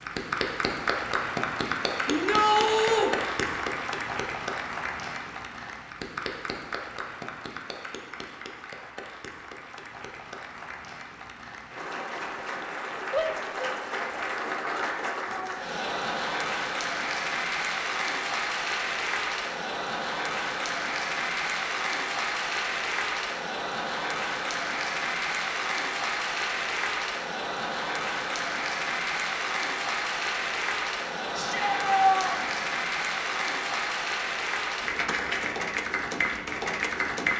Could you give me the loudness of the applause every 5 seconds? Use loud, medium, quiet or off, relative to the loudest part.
loud, medium, medium, loud, loud, loud, loud, loud.